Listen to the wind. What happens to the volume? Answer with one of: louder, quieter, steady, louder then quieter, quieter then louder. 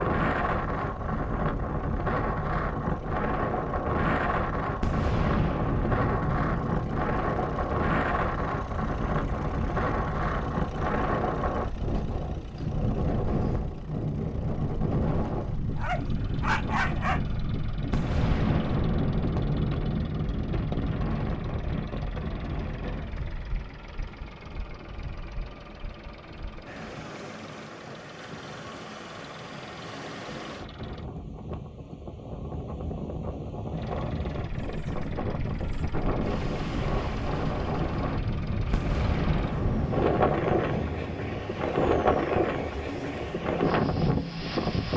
quieter then louder.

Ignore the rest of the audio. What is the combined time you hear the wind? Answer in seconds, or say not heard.
45 s.